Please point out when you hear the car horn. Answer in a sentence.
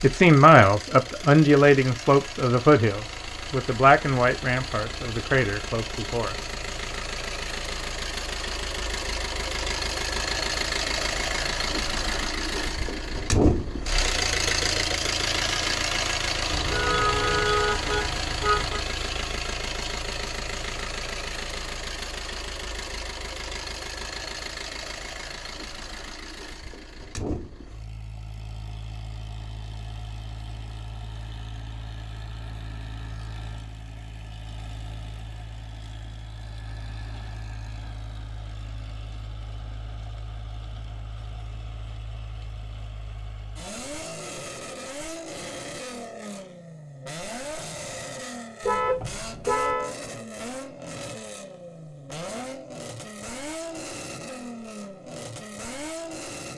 The car horn can be heard from 16.5 to 18.8 s and from 48.6 to 49.9 s.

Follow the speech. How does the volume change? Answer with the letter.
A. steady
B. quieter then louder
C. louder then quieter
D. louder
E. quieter
E.